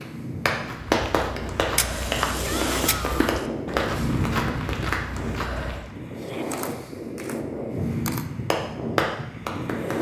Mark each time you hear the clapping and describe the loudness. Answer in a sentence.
You can hear the clapping from 0.0 to 5.0 s, getting quieter; and briefly from 8.5 to 9.9 s.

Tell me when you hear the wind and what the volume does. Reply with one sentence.
You can hear the wind from 0.0 to 9.9 s, getting louder.